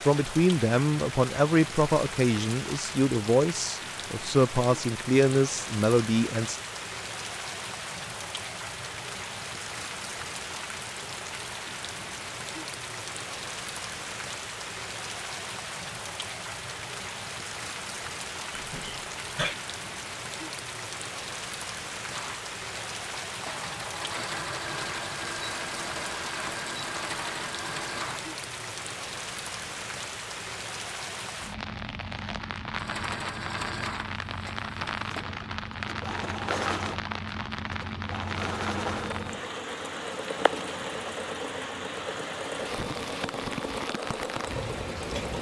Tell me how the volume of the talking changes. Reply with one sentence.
The volume of the talking stays about the same.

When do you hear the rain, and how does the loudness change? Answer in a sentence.
The rain can be heard from 0.0 to 45.3 s, at a steady volume.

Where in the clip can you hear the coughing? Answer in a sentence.
The coughing can be heard from 18.5 to 19.6 s.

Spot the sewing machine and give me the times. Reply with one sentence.
The sewing machine can be heard from 22.1 to 28.4 s and from 32.7 to 45.3 s.